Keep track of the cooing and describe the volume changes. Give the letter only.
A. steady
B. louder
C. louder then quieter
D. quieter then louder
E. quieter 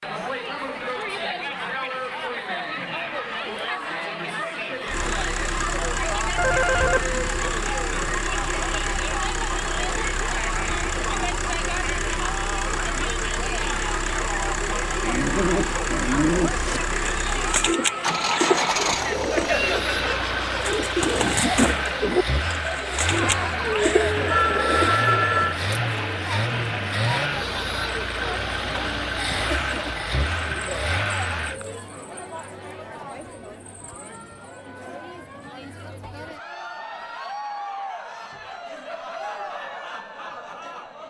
A.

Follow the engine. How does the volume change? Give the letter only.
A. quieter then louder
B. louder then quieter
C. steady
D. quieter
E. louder
C.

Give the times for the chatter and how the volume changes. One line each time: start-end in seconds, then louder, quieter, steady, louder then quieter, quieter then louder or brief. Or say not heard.
0.0-41.0 quieter.